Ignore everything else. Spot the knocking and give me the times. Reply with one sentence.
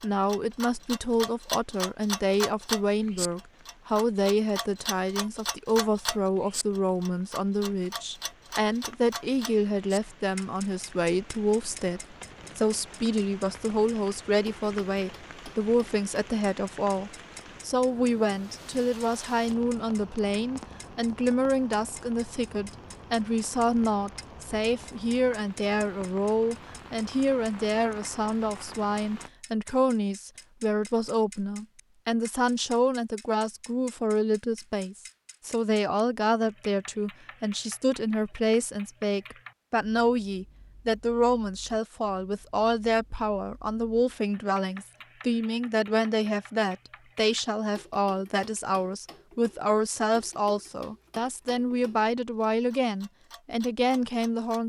You can't hear the knocking here.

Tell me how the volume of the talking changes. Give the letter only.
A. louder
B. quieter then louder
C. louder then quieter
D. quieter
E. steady
E.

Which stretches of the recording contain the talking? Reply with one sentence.
You can hear the talking from 0.0 to 54.6 s.